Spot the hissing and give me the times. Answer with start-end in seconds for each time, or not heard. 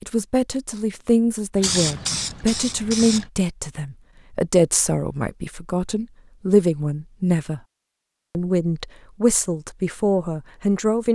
1.6-3.2.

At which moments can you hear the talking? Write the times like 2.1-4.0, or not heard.
0.0-7.6, 8.3-11.0.